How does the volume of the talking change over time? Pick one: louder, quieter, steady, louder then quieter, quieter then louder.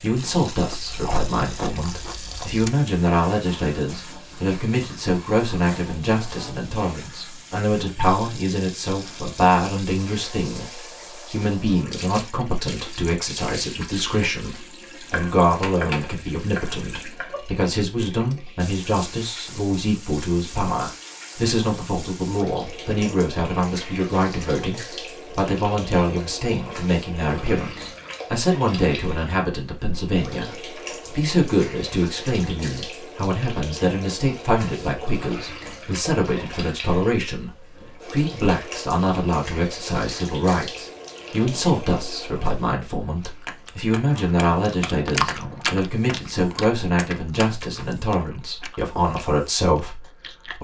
steady.